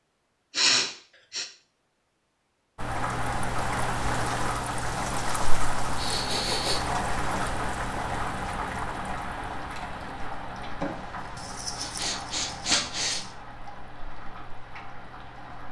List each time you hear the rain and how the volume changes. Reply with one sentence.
You can hear the rain from 2.8 to 15.6 s, getting quieter.